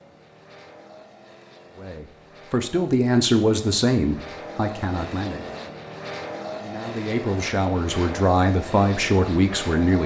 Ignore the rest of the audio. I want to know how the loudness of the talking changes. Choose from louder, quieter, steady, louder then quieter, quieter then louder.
quieter then louder.